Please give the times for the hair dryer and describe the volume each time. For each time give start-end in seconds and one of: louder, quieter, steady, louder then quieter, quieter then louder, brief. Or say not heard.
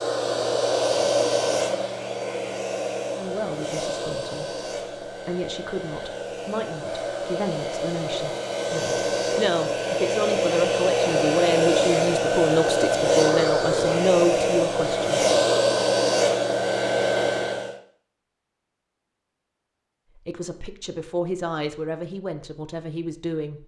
0.0-17.8 quieter then louder.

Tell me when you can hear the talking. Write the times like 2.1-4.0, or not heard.
3.1-15.2, 20.1-23.6.